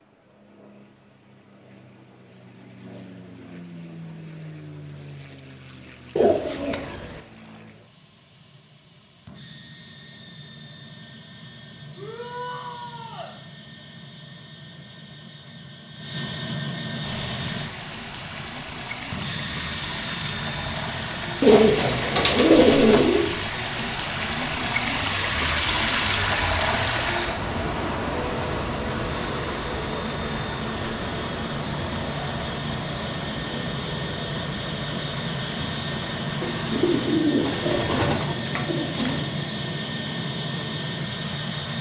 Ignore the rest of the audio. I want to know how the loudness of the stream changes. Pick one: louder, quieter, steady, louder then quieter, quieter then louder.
louder then quieter.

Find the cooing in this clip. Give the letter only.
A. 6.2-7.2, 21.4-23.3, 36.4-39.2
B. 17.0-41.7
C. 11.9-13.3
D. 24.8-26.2
A.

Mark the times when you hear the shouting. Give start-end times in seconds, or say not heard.
11.9-13.3.